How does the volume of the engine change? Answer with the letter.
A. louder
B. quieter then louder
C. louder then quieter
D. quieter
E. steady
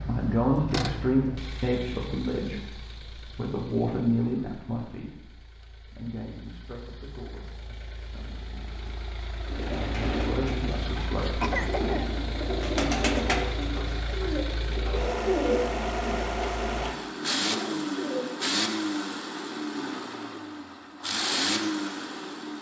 B.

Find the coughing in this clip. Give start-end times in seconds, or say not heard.
10.9-12.1.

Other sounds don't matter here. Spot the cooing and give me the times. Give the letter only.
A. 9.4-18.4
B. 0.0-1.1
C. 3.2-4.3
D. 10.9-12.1
A.